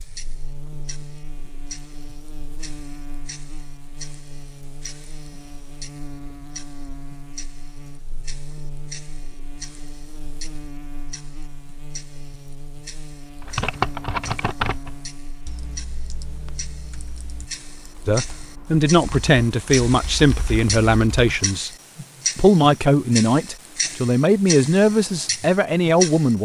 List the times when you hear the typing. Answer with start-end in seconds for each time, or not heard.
13.4-21.6.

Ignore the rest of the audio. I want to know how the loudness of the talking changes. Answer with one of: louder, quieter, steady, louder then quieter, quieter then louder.
steady.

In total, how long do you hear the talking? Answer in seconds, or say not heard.
8 s.